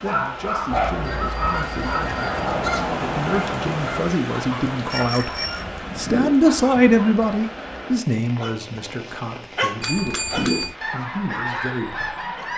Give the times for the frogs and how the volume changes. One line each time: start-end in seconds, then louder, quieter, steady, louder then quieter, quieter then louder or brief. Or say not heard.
not heard.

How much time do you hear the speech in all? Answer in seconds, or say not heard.
12 s.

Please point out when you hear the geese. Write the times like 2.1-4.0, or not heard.
0.7-7.1, 10.3-12.5.